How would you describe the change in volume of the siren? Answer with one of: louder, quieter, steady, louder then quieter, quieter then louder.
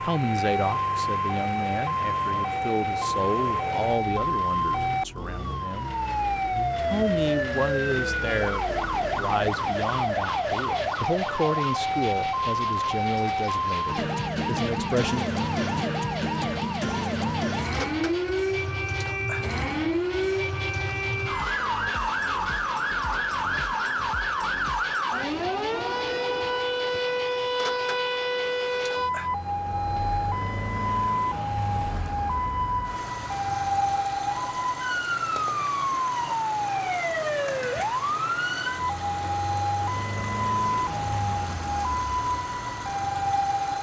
steady.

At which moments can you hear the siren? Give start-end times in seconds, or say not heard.
0.0-43.7.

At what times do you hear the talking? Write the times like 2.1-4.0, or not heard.
0.0-6.0, 6.8-15.2.